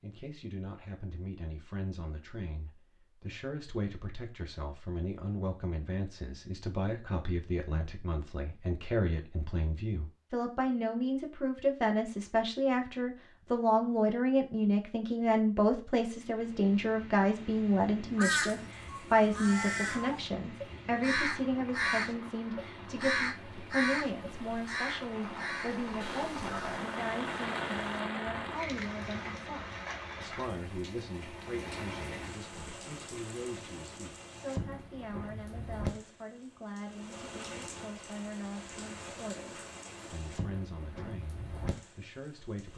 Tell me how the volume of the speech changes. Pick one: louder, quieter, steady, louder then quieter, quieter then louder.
louder then quieter.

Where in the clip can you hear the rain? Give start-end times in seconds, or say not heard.
16.1-42.7.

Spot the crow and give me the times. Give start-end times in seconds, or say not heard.
18.1-29.4.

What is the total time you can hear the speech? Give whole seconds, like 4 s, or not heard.
43 s.